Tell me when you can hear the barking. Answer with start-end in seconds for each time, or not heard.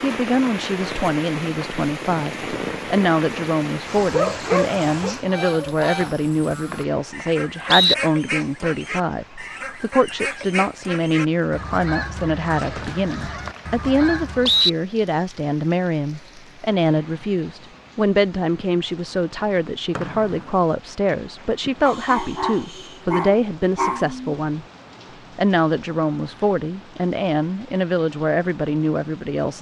4.1-5.8, 21.9-24.4.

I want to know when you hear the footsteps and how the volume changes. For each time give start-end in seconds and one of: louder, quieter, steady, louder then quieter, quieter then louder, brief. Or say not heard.
not heard.